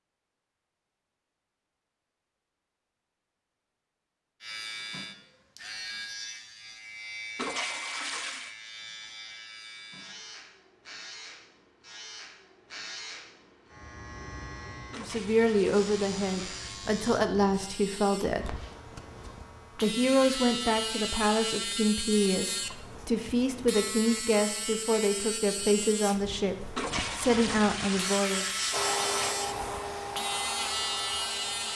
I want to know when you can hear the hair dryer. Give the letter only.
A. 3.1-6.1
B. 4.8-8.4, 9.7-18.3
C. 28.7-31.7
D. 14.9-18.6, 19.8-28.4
C.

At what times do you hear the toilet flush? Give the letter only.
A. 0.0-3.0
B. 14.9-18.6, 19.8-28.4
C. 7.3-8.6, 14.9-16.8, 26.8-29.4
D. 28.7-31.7
C.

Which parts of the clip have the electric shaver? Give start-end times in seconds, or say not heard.
4.4-31.7.